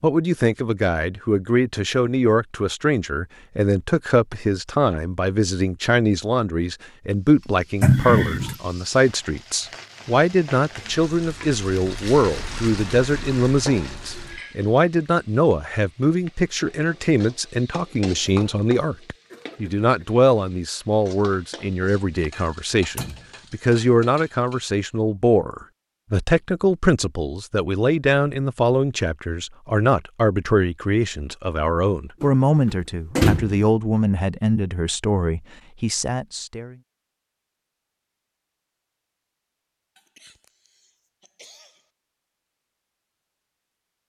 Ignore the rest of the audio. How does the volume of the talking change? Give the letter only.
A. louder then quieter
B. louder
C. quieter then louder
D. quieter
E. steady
E.